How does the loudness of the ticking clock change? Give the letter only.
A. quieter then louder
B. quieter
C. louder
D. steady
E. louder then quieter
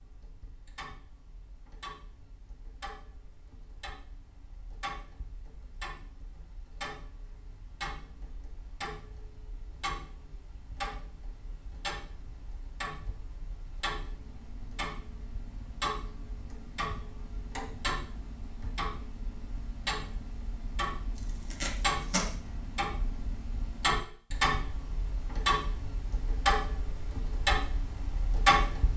C.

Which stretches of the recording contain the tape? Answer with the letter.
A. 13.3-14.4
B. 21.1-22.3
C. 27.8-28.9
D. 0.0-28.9
B.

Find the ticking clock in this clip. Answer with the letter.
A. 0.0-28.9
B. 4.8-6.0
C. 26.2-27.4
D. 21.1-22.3
A.